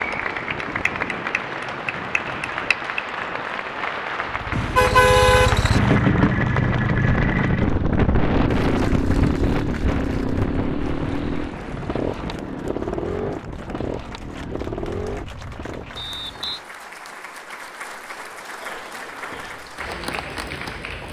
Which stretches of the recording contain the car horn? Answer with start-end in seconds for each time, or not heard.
4.5-6.0.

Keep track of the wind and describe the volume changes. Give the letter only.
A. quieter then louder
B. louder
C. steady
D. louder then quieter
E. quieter
D.